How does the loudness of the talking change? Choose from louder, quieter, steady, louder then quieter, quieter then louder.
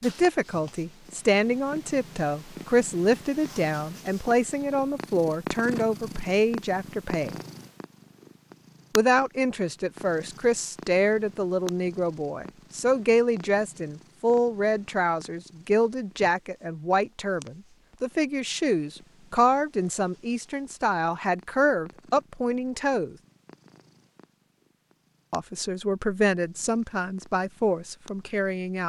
steady.